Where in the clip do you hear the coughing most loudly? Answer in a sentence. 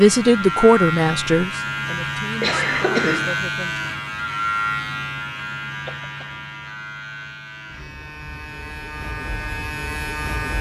The loudest moment of the coughing is at 3 seconds.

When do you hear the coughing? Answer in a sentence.
The coughing can be heard from 2.4 to 3.4 s and from 5.8 to 6.5 s.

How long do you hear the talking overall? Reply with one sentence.
You can hear the talking for 4 seconds altogether.